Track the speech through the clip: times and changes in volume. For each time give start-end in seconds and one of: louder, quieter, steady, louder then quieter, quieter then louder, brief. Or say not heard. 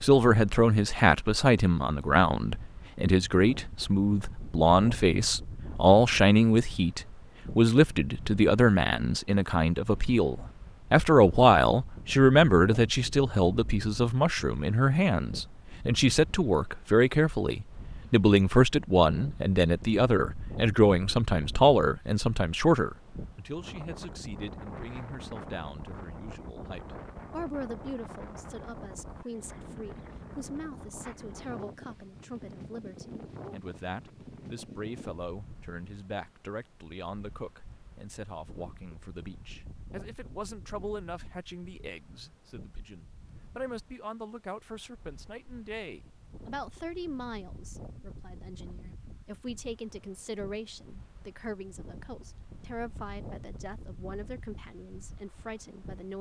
0.0-56.1 quieter.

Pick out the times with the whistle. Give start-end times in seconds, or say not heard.
not heard.